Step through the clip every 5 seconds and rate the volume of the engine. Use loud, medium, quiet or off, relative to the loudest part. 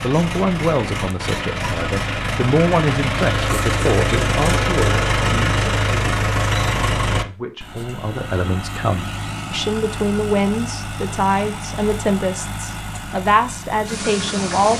loud, loud, medium.